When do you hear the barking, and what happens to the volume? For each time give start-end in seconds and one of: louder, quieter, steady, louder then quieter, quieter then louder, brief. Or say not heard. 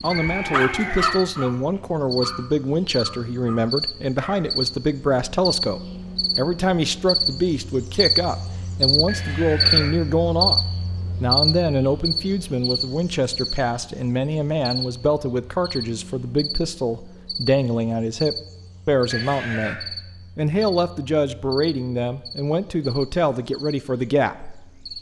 0.0-4.5 quieter.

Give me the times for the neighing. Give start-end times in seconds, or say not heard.
0.1-1.2, 9.1-9.9, 19.1-19.8.